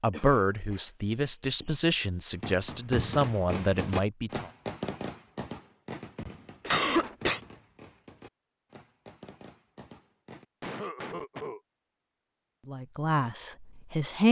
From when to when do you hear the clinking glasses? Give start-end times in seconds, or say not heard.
not heard.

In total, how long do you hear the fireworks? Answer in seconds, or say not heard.
8 s.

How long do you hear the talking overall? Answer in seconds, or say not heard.
6 s.